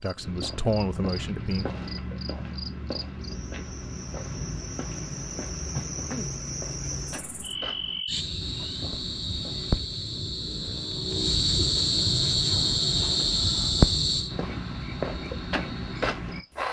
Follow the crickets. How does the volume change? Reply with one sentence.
The volume of the crickets goes up.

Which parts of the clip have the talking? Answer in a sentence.
The talking can be heard from 0.0 to 1.6 s.